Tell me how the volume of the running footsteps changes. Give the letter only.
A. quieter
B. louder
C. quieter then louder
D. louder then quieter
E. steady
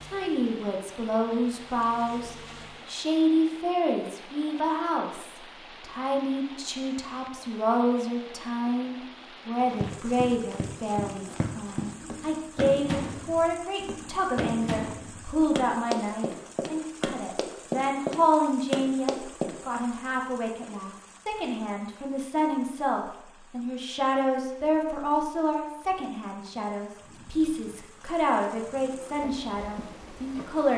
B.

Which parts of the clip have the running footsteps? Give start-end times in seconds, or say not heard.
9.6-19.6.